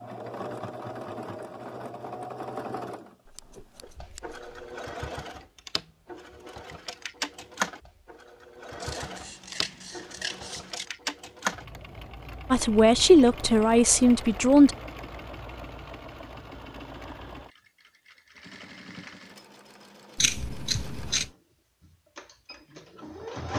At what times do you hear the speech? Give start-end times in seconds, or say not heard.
12.5-14.7.